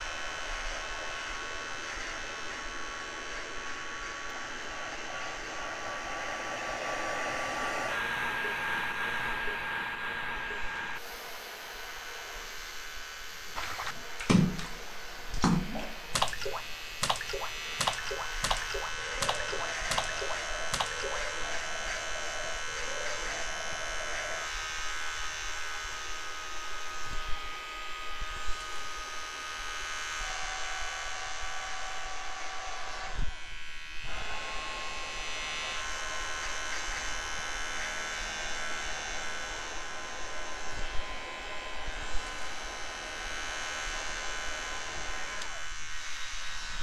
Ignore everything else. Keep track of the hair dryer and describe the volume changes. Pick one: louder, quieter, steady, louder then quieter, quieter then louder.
quieter.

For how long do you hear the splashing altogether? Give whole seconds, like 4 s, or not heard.
8 s.